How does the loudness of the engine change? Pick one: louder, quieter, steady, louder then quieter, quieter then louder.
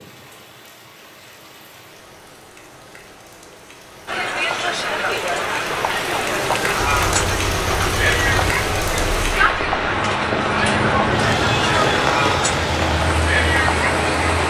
quieter then louder.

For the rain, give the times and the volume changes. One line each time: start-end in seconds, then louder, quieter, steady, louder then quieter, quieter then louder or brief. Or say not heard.
0.0-14.4 louder.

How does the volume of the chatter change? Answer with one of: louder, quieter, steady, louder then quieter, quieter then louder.
steady.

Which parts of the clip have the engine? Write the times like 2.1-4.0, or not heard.
6.8-14.4.